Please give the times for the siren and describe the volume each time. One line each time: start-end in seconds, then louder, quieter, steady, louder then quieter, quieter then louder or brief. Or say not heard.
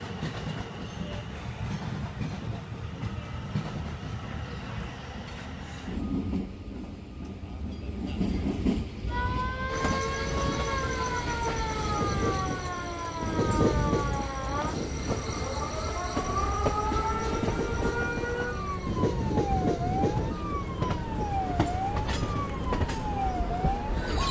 9.1-24.2 steady.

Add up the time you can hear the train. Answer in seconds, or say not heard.
24 s.